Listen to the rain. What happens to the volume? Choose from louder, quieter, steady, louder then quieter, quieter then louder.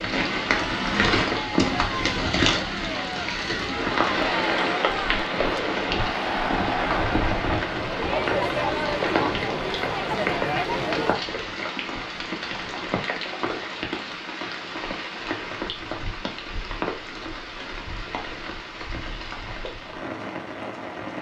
quieter.